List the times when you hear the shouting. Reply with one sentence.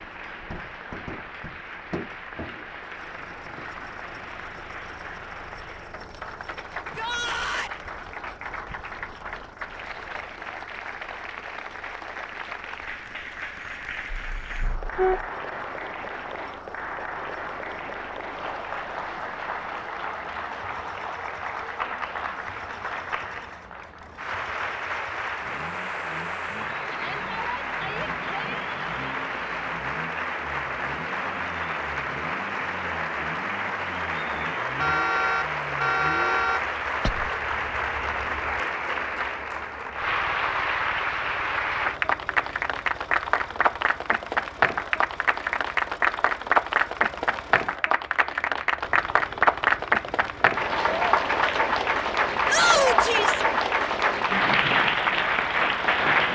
You can hear the shouting from 6.8 to 7.8 s, from 26.9 to 28.6 s and from 52.5 to 53.4 s.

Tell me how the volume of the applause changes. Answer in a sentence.
The loudness of the applause goes up.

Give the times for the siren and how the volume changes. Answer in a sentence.
You can't hear the siren here.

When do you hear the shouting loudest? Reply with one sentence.
The volume of the shouting peaks at 53 seconds.